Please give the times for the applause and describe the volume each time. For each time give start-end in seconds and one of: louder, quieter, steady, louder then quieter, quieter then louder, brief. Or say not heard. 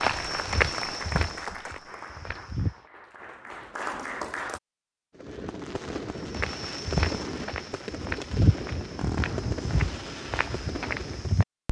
0.0-4.6 quieter then louder.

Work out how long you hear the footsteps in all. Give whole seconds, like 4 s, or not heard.
8 s.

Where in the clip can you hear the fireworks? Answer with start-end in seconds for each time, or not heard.
5.2-11.4.